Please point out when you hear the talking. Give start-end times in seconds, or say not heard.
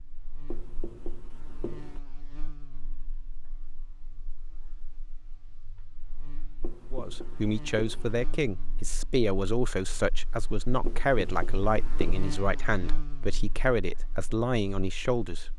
6.9-15.5.